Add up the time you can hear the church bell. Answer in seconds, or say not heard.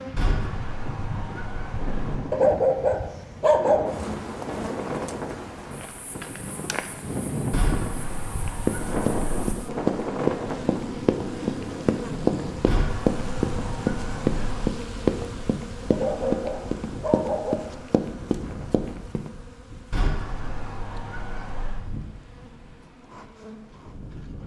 not heard.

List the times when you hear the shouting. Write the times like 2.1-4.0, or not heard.
not heard.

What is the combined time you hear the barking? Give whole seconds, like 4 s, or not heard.
3 s.